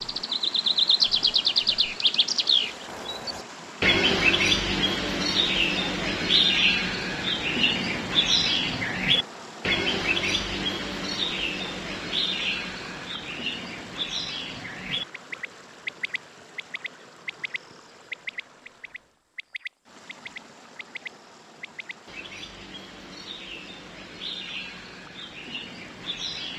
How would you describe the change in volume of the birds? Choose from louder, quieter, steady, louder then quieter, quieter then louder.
quieter.